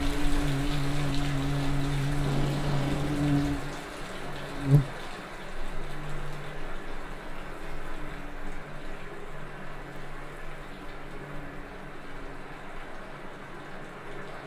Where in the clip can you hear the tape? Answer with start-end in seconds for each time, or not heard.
2.1-3.2.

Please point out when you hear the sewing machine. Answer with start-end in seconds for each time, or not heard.
not heard.